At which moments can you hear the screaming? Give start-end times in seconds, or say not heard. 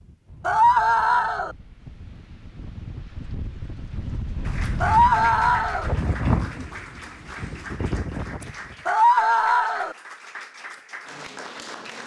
0.5-1.6, 4.8-5.9, 8.8-9.9.